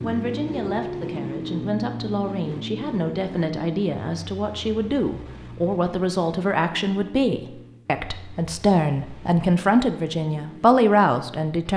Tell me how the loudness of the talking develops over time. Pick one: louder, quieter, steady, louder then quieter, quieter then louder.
louder.